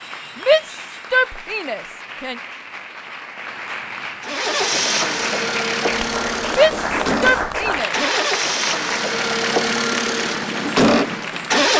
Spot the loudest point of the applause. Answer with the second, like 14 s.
7 s.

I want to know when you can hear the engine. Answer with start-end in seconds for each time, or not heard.
4.2-11.7.